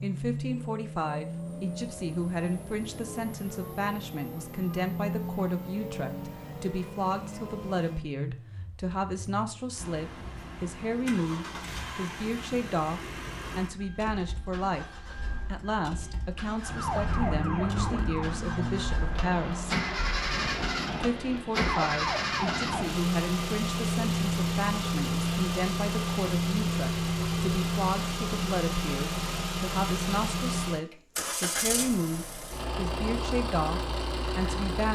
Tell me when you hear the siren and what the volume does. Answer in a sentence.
The siren can be heard from 16.6 to 22.9 s, getting quieter then louder.